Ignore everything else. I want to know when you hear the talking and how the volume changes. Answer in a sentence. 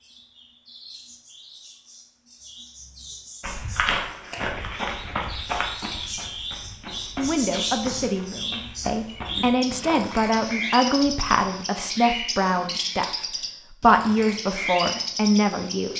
You can hear the talking from 7.2 to 15.9 s, getting louder.